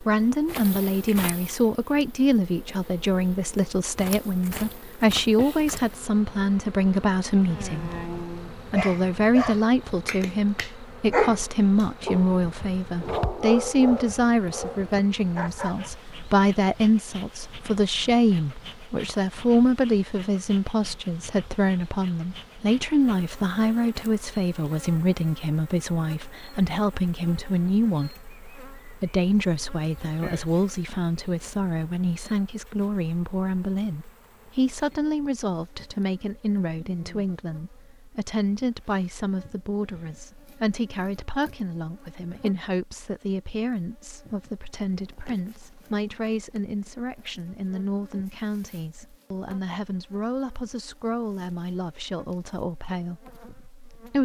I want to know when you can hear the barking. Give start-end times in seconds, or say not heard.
7.5-15.9.